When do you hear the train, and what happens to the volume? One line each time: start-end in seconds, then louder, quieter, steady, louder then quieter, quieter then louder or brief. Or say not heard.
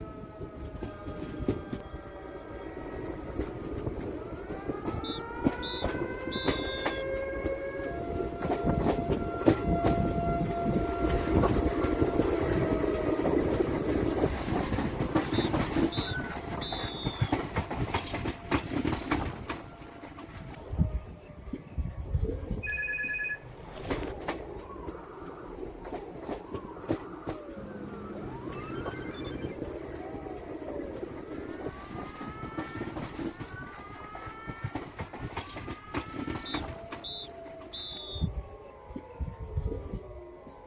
0.0-40.6 louder then quieter.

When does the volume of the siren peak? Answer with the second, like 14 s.
10 s.